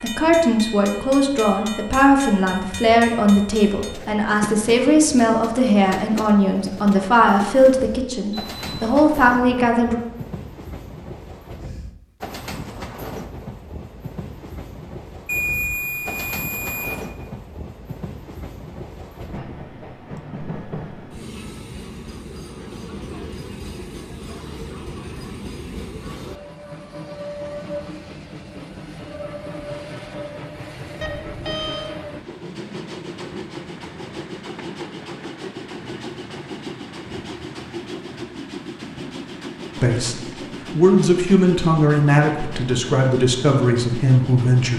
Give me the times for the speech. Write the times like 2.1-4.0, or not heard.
0.0-9.9, 39.8-44.7.